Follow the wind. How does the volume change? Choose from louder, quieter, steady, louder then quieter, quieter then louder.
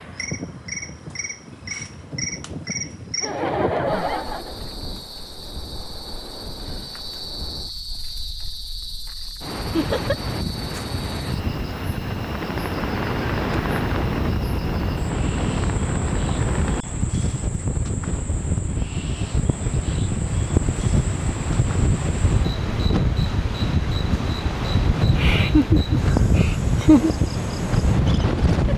louder.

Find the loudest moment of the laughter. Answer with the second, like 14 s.
27 s.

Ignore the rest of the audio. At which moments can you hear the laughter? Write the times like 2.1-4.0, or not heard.
3.2-4.5, 9.7-10.2, 25.1-27.1.